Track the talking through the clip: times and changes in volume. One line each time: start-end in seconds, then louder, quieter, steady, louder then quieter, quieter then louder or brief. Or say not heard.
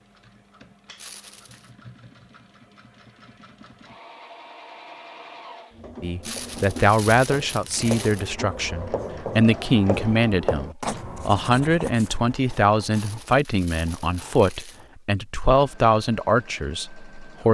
6.0-17.5 steady.